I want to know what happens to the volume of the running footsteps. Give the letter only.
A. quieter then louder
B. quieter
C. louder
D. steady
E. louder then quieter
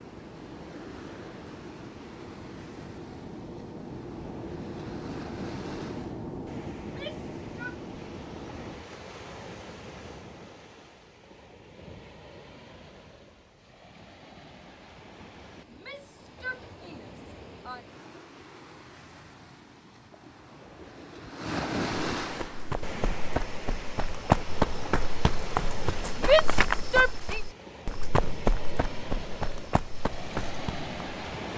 E.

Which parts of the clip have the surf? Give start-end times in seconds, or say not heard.
0.0-31.5.